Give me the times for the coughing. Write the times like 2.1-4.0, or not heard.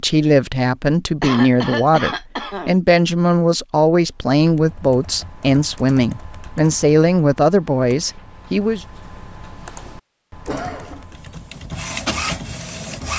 1.2-2.8, 10.4-11.2.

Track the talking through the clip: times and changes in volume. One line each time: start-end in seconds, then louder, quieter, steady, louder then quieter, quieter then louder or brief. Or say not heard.
0.0-8.8 steady.